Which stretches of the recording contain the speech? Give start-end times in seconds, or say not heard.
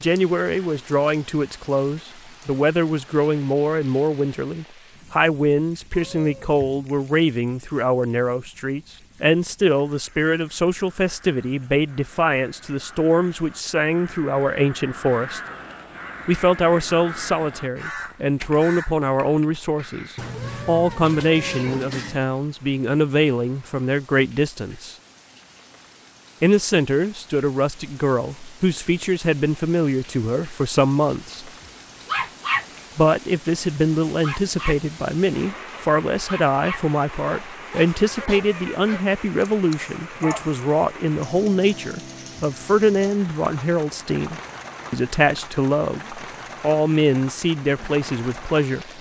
0.0-15.4, 16.2-24.9, 26.4-31.5, 33.0-48.9.